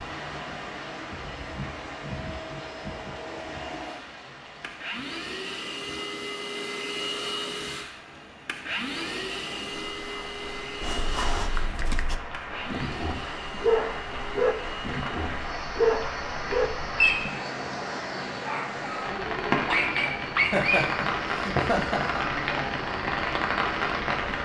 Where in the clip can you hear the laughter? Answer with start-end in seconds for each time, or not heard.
20.4-22.2.